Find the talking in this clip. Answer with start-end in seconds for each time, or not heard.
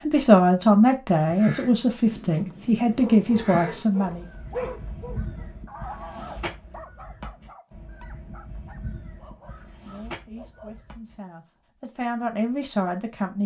0.0-4.2, 9.8-13.4.